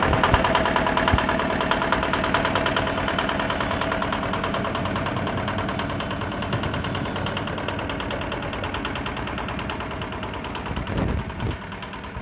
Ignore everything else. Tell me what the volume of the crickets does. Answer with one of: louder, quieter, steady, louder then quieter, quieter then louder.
louder then quieter.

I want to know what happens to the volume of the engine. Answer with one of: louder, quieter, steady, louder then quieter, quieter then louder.
quieter.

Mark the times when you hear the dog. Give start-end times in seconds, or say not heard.
not heard.